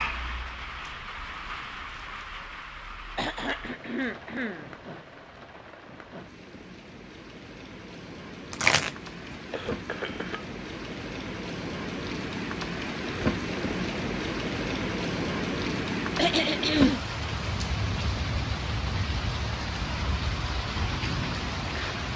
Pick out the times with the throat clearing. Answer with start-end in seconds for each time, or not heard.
3.1-4.8, 9.5-10.4, 15.8-17.0.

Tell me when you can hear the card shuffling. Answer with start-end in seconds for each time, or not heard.
8.5-9.3.